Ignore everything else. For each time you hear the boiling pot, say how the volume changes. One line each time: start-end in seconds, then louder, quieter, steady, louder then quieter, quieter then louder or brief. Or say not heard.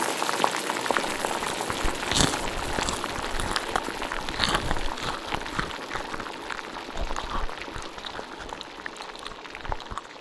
0.0-10.1 quieter.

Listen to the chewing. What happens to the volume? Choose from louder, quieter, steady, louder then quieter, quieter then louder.
quieter.